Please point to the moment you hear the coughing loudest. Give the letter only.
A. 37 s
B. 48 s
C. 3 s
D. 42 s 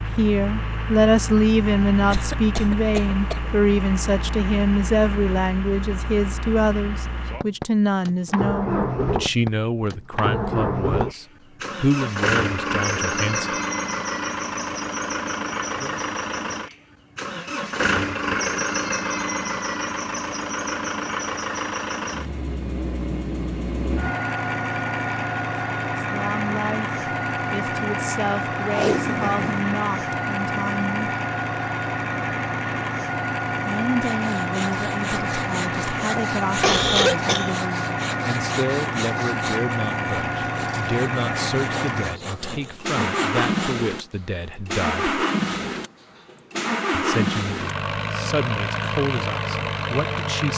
A.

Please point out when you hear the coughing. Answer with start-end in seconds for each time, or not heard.
2.1-3.5, 36.6-37.5.